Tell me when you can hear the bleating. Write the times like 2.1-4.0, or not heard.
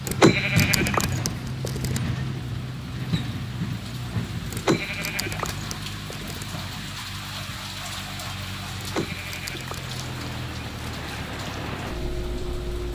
0.1-2.0, 4.5-6.5, 8.8-10.0.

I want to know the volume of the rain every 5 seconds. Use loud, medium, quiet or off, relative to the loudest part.
medium, loud, medium.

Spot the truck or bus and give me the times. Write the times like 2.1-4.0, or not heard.
0.0-12.9.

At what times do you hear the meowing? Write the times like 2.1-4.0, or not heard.
not heard.